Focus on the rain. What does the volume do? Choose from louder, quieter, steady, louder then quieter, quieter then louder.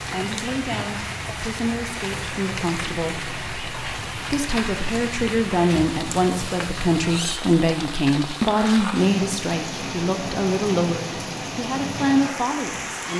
steady.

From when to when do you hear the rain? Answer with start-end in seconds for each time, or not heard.
0.0-13.1.